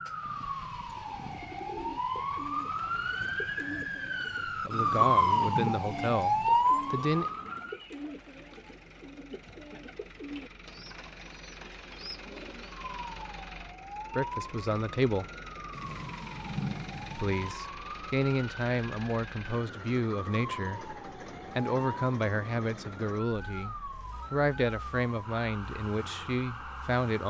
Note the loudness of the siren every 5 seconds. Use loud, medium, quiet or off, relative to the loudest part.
medium, loud, quiet, quiet, quiet, quiet.